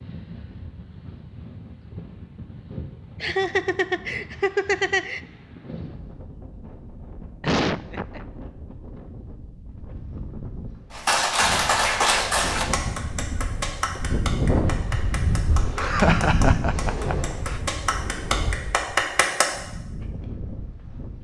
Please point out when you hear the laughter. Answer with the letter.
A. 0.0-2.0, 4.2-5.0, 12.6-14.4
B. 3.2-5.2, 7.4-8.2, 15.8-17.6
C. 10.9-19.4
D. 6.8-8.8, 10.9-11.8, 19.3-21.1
B.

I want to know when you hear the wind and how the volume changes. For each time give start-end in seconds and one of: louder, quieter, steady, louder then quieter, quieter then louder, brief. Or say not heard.
0.0-21.1 louder then quieter.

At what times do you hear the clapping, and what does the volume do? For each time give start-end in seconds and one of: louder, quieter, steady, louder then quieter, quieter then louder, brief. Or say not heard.
10.9-19.4 quieter then louder.